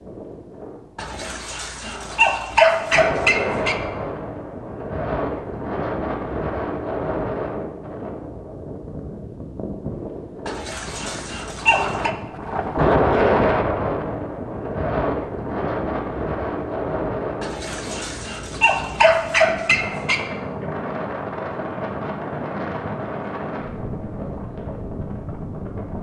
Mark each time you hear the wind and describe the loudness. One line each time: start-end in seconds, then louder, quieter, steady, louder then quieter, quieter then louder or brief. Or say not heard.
0.0-25.9 louder then quieter.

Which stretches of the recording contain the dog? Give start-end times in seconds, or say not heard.
0.9-3.8, 10.4-12.2, 17.4-20.2.